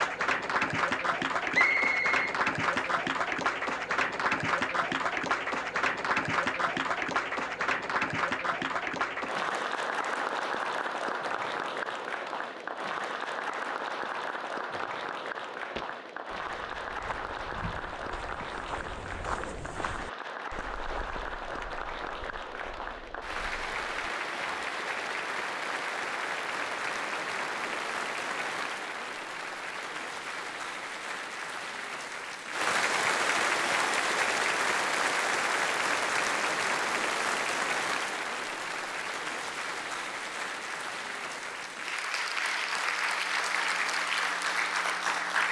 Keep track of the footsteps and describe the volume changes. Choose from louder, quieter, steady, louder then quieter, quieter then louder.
louder then quieter.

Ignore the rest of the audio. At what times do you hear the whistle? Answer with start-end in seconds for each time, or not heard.
1.5-2.9.